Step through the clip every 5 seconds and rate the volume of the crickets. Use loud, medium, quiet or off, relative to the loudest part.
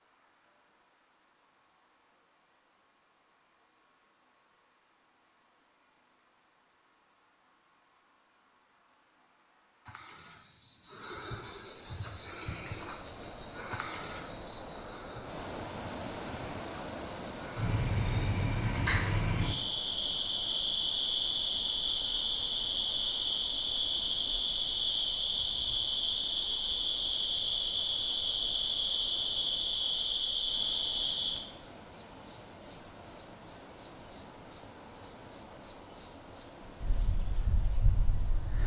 quiet, quiet, medium, medium, medium, medium, loud, loud.